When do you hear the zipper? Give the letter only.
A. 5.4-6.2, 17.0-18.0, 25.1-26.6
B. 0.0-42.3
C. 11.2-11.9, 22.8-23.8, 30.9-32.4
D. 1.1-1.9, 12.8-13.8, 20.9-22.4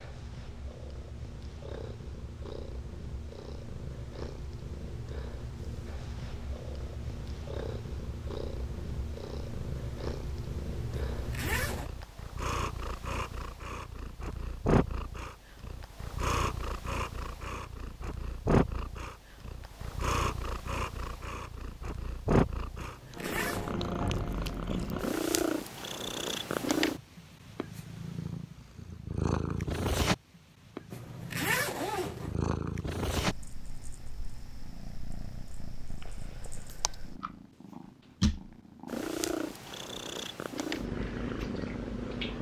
C.